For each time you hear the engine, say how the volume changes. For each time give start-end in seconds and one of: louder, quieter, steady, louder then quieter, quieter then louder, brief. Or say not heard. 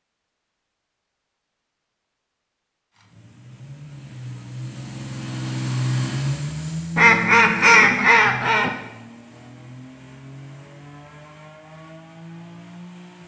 2.9-13.2 louder then quieter.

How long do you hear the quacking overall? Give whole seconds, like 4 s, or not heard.
2 s.